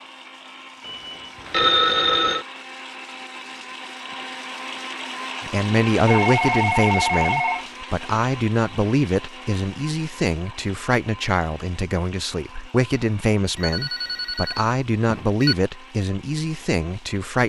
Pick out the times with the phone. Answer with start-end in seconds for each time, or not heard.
0.8-2.5, 6.0-7.7, 13.6-15.6.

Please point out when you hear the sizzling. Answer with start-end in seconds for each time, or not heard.
not heard.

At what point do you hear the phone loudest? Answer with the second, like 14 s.
2 s.